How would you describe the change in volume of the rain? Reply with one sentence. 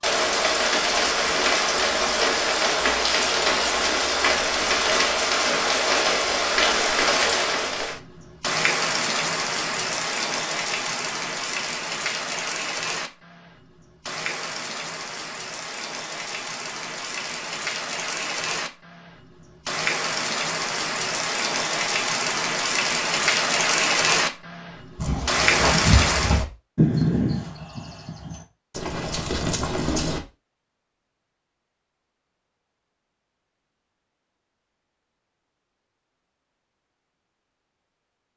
The loudness of the rain goes down, then up.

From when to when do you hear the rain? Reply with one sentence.
You can hear the rain from 0.0 to 26.4 s.